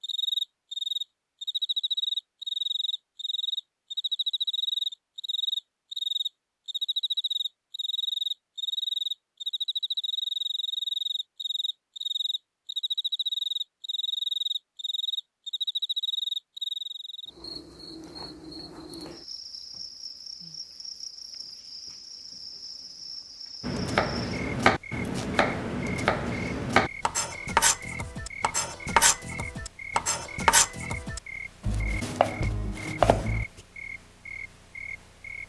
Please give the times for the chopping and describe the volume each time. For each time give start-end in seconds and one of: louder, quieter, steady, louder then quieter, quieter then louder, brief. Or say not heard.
23.6-33.5 steady.